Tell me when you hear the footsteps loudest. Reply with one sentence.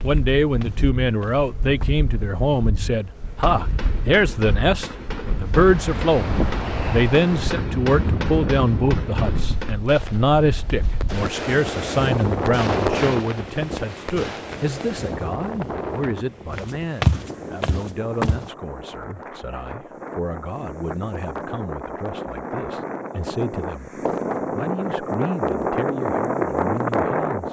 The volume of the footsteps peaks at 17 seconds.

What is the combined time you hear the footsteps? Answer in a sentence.
You can hear the footsteps for 4 seconds altogether.